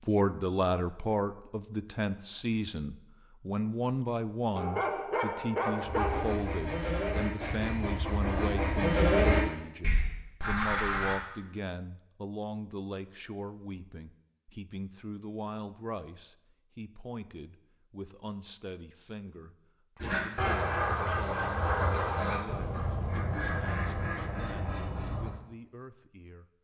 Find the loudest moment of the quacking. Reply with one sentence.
The volume of the quacking peaks at 9 seconds.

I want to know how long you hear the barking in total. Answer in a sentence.
You can hear the barking for 2 seconds altogether.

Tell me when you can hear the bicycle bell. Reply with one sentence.
You can't hear the bicycle bell here.